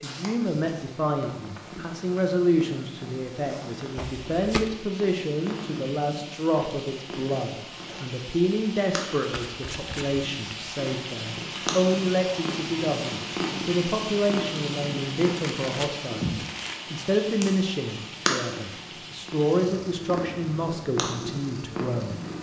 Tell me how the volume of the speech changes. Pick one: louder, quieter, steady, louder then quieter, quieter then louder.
steady.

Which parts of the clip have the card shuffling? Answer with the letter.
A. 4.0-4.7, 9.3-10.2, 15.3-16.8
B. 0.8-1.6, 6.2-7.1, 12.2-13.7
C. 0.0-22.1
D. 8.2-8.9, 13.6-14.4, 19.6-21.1
A.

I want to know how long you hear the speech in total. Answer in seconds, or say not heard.
22 s.